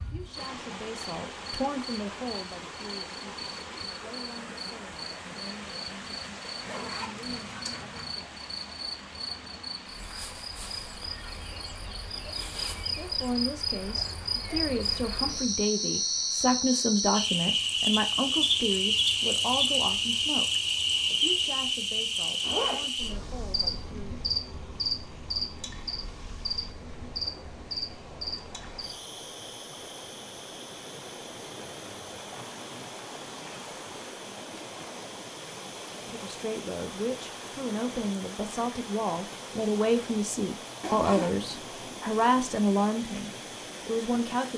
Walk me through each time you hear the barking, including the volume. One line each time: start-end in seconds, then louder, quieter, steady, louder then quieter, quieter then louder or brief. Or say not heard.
not heard.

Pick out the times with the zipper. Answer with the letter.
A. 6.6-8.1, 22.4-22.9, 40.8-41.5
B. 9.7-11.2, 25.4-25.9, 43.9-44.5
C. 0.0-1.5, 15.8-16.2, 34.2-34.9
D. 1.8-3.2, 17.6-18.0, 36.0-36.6
A.